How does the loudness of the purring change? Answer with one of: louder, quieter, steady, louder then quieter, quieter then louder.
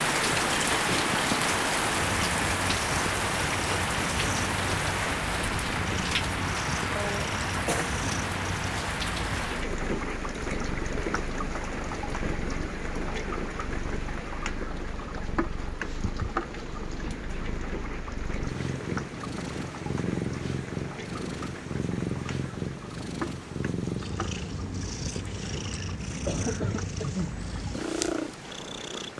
quieter then louder.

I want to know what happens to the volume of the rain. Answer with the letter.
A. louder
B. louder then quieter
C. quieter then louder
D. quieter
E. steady
D.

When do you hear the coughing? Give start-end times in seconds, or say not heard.
7.0-8.0, 26.2-27.4.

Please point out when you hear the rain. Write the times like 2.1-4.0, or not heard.
0.0-29.1.